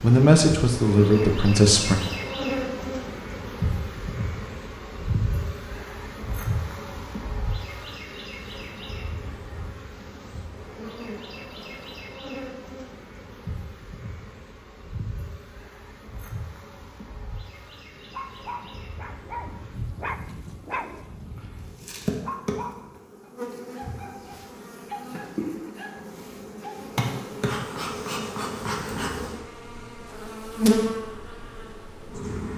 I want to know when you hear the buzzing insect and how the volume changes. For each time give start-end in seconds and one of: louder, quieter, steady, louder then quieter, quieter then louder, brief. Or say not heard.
0.0-32.5 quieter then louder.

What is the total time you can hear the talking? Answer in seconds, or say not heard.
2 s.